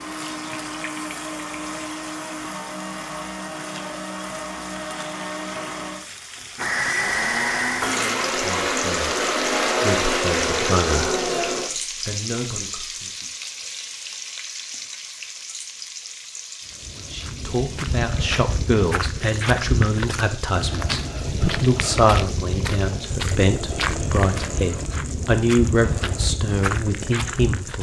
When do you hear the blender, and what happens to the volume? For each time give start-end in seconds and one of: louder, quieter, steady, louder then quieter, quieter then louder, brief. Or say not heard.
0.0-11.7 louder.